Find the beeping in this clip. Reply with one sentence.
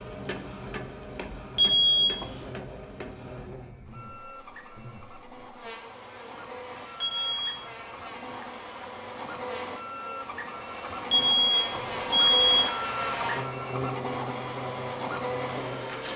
The beeping can be heard from 1.6 to 2.5 s, from 7.0 to 7.7 s and from 11.1 to 12.7 s.